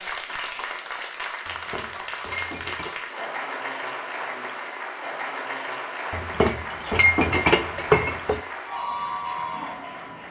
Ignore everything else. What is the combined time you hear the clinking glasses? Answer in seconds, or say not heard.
4 s.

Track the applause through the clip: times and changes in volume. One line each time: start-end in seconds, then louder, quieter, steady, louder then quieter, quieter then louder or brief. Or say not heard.
0.0-10.2 steady.